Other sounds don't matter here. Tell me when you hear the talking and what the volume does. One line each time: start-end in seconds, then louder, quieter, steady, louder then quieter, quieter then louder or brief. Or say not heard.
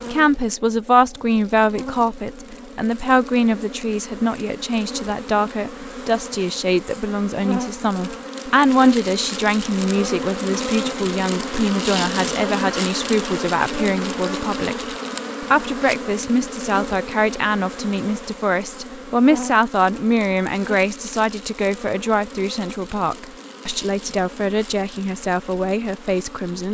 0.0-26.7 steady.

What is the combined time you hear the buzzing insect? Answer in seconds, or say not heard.
27 s.